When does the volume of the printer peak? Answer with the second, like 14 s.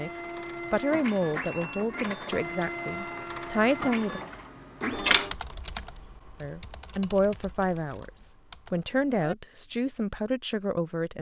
5 s.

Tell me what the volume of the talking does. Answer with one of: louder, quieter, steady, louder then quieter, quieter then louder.
steady.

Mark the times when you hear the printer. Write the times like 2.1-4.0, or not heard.
0.0-5.3.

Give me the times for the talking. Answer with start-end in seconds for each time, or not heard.
0.0-4.2, 6.4-11.1.